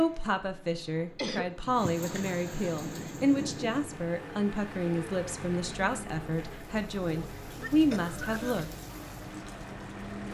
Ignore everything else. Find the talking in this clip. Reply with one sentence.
You can hear the talking from 0.0 to 8.7 s.